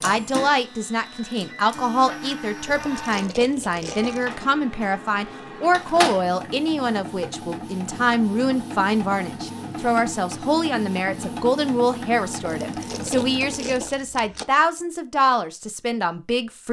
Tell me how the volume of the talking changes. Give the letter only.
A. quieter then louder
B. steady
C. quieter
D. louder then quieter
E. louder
B.